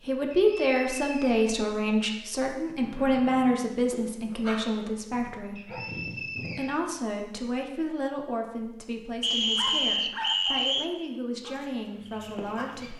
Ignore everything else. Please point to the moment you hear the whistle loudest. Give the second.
10 s.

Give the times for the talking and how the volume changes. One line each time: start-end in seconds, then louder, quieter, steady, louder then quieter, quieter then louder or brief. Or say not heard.
0.0-12.9 quieter.